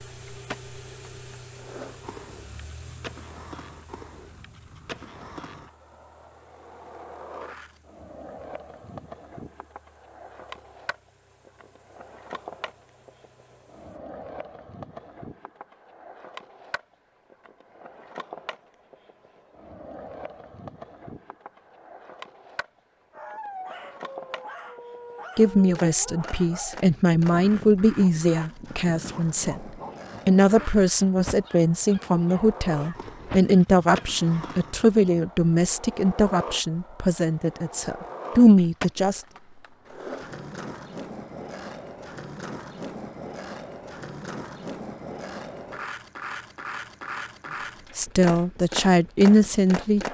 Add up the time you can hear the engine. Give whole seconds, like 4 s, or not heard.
14 s.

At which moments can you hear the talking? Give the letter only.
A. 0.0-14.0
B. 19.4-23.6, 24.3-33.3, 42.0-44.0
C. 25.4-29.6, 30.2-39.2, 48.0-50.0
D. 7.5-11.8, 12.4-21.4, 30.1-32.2
C.